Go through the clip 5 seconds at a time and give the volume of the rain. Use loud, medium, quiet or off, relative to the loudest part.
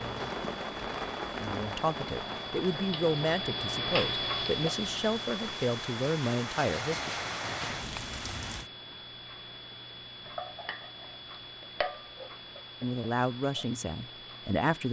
loud, loud, off.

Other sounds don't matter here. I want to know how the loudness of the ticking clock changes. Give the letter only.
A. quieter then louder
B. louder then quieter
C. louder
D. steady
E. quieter
B.